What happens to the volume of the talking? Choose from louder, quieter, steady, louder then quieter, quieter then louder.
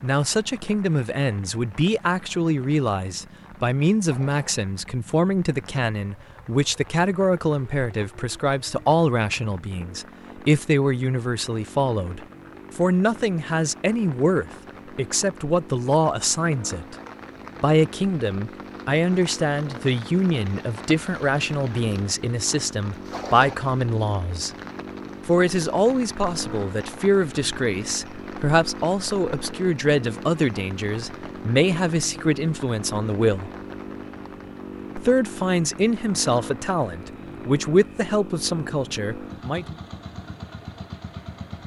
steady.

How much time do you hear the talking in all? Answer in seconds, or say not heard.
37 s.